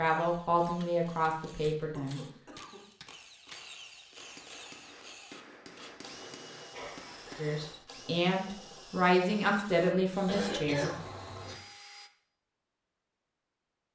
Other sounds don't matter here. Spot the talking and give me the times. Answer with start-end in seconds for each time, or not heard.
0.0-2.2, 7.3-10.9.